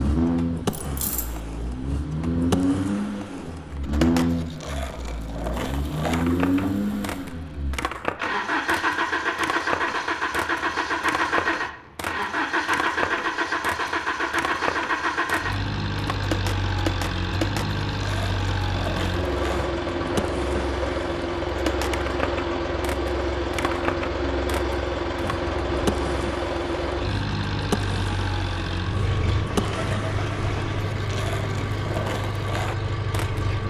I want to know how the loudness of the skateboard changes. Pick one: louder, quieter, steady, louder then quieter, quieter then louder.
steady.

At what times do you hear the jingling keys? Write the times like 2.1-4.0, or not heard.
0.7-1.4.